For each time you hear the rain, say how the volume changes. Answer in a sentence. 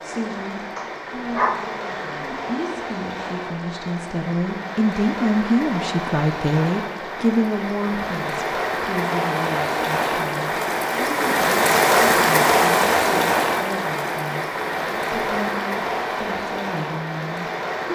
The rain can be heard from 0.0 to 17.9 s, getting louder then quieter.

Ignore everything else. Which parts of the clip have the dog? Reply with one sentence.
The dog can be heard from 0.8 to 2.2 s.